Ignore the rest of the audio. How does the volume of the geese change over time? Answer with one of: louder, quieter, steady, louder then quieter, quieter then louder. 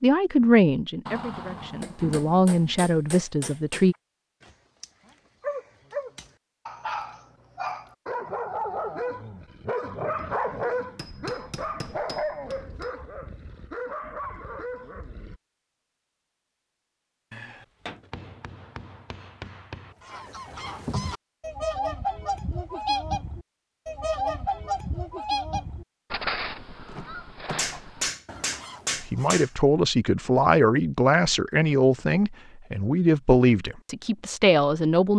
quieter.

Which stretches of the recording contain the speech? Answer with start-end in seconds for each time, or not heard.
0.0-4.0, 29.0-35.1.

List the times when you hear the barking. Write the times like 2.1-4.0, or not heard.
3.9-15.4.